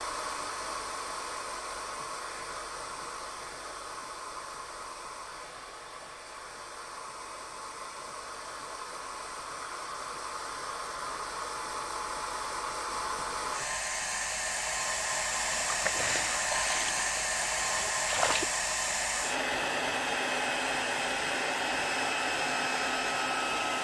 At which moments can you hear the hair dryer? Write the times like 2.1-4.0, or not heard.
0.0-23.7.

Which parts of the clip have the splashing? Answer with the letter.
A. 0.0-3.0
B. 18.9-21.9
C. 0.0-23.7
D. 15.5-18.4
D.